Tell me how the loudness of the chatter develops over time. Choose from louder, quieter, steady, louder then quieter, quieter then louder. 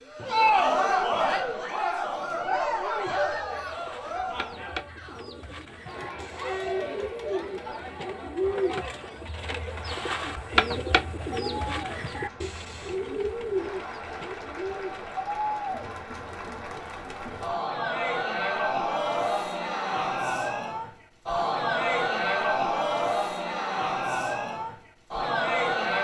quieter then louder.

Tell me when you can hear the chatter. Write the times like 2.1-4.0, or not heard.
0.0-25.9.